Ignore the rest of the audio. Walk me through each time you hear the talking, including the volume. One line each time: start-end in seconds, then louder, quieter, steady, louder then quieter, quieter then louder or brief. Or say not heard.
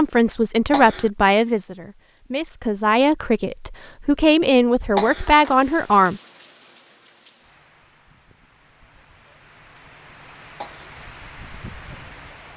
0.0-6.2 quieter then louder.